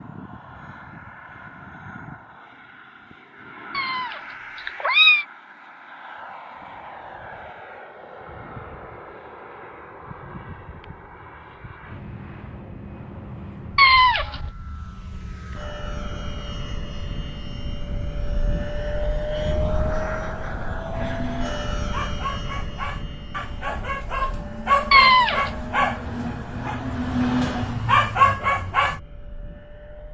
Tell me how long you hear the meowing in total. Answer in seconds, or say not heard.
3 s.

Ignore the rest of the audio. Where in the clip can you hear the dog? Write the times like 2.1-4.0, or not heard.
20.9-29.0.